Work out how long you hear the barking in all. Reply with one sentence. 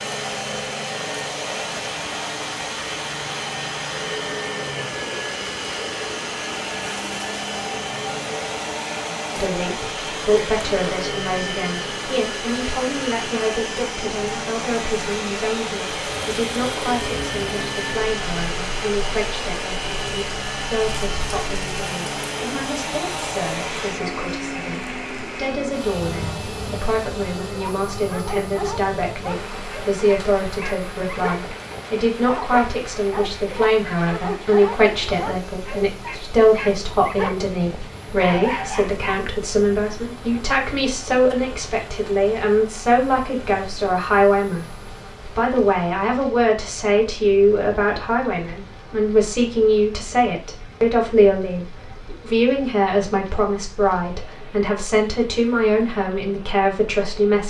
You can hear the barking for 12 seconds altogether.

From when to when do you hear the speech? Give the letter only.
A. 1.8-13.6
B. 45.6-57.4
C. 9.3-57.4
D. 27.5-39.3
C.